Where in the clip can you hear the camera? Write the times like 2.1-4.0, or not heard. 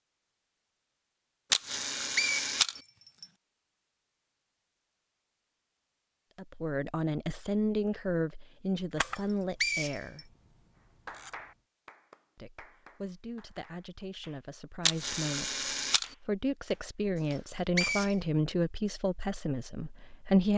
1.5-2.8, 8.9-11.6, 14.8-16.1.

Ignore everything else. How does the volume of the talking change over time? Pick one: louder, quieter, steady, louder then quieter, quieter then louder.
quieter then louder.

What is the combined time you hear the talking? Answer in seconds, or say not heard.
12 s.